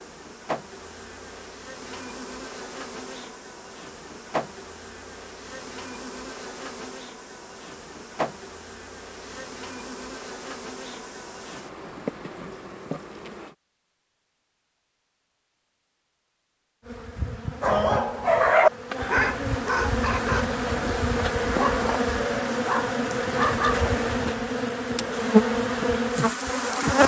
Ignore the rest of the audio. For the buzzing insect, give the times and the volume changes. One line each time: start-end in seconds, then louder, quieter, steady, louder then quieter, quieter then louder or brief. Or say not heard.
0.0-13.6 steady
16.8-27.0 louder.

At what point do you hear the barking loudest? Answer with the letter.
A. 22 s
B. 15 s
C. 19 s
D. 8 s
C.